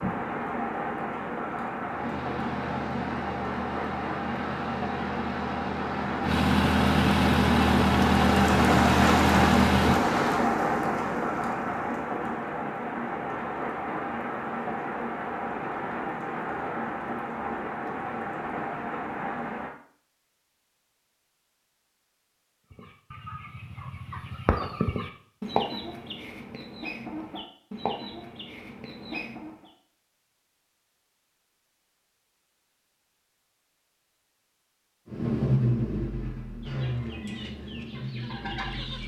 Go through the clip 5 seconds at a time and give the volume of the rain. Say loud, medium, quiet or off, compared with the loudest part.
medium, loud, loud, medium, off, off, off, off.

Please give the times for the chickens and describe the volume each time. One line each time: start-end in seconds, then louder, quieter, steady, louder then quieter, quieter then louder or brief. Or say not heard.
22.7-29.7 louder then quieter
36.6-39.0 brief.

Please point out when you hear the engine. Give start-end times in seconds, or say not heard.
1.9-10.4, 35.1-39.0.